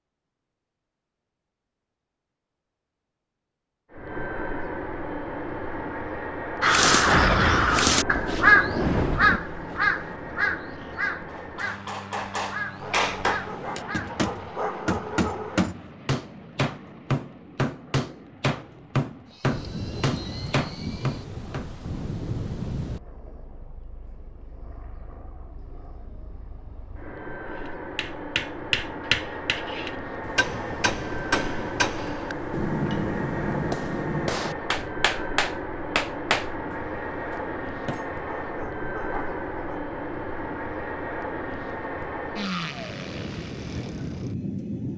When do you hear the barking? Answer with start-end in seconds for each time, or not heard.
12.8-15.7, 38.2-39.8.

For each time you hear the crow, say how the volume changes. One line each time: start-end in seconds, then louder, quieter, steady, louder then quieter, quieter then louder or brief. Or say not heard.
6.6-14.2 quieter.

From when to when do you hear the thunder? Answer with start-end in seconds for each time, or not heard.
6.8-9.4, 19.5-23.0, 30.2-33.6.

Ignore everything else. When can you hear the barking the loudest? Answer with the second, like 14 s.
15 s.